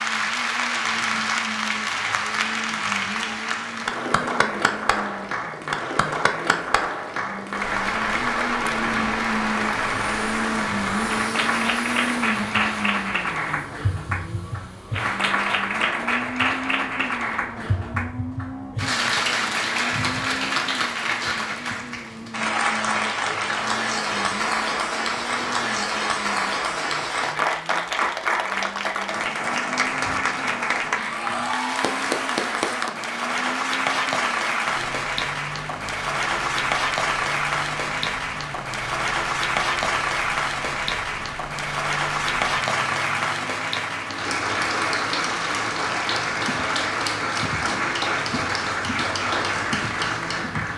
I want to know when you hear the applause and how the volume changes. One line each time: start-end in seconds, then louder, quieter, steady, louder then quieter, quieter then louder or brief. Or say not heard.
0.0-50.7 steady.